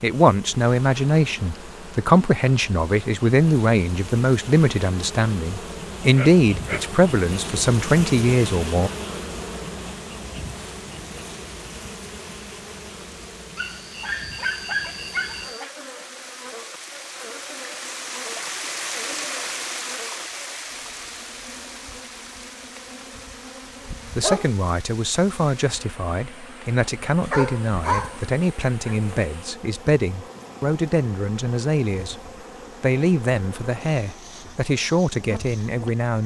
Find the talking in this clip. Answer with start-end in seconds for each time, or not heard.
0.0-8.9, 24.1-32.2, 32.8-36.2.